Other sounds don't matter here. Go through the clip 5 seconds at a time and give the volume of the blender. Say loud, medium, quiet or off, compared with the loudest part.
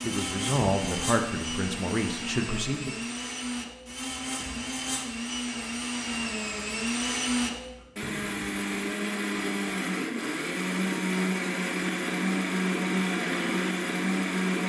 medium, loud, loud.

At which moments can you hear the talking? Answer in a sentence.
You can hear the talking from 0.0 to 3.0 s.